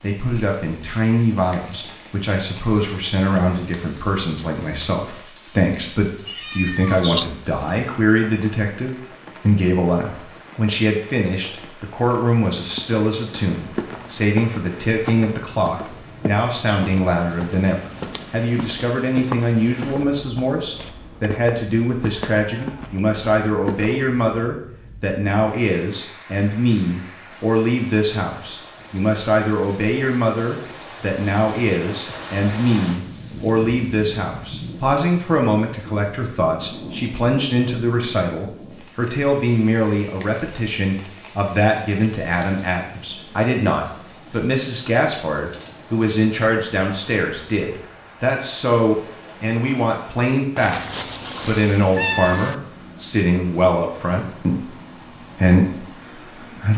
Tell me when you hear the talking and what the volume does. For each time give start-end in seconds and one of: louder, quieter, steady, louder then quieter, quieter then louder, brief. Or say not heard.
0.0-56.7 steady.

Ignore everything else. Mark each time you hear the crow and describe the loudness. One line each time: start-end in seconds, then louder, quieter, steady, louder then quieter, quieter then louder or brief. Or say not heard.
not heard.